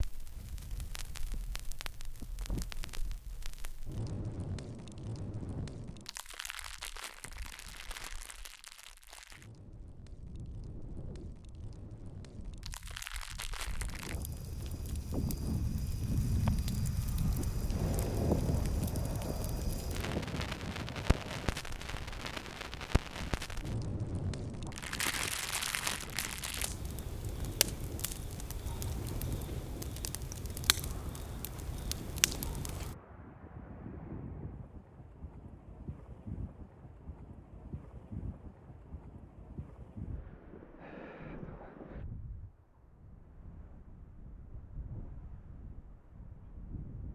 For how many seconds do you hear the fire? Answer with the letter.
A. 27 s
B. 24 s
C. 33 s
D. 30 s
C.